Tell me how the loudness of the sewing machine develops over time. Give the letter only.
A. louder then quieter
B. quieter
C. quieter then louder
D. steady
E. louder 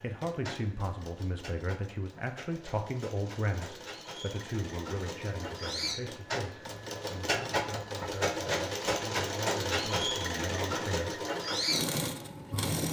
E.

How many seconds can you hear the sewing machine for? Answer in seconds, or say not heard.
13 s.